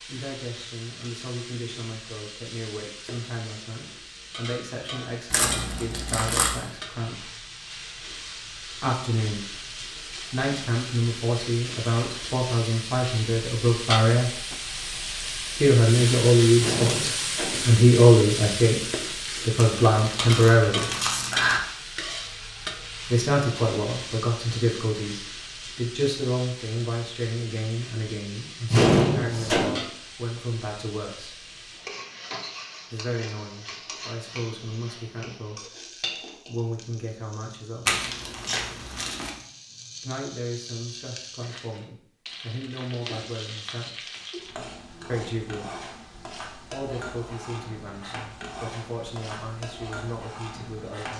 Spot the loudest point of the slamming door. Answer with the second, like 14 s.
29 s.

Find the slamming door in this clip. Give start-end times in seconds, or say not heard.
16.6-17.8, 28.7-29.9.